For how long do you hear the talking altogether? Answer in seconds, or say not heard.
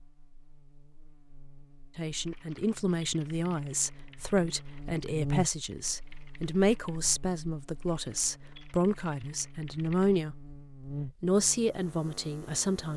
10 s.